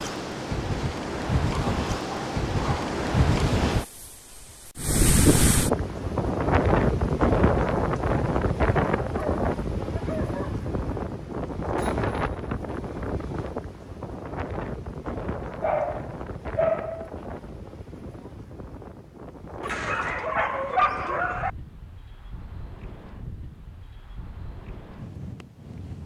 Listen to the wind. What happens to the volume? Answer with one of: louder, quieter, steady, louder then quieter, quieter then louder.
quieter.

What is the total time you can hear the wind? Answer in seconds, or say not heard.
26 s.